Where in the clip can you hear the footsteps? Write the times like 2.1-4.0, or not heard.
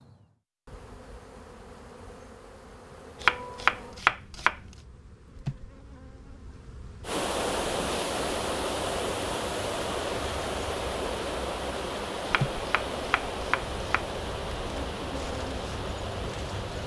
not heard.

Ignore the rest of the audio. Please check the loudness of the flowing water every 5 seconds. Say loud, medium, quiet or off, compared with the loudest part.
off, loud, loud, medium.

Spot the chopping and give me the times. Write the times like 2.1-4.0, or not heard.
3.2-4.8, 12.4-14.1.